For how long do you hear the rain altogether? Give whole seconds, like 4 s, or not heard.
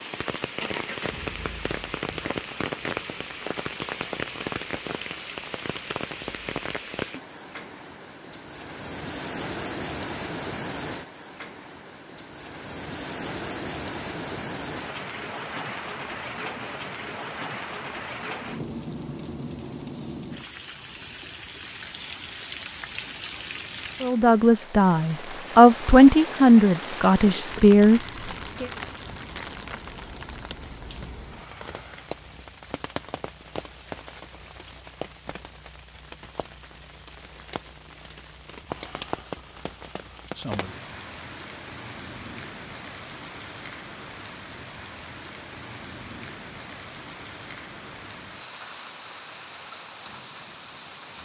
51 s.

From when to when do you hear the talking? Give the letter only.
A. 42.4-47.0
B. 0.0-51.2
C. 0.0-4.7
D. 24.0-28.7
D.